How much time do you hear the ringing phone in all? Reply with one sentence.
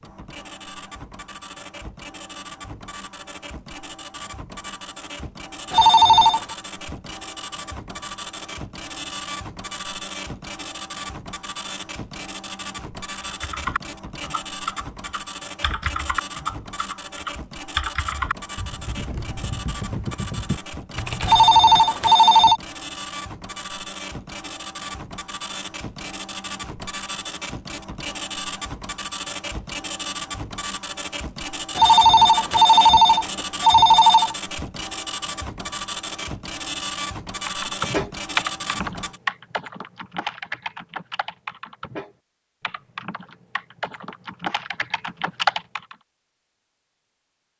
The ringing phone can be heard for 5 seconds in total.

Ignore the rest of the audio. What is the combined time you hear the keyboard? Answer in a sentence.
You can hear the keyboard for 17 seconds altogether.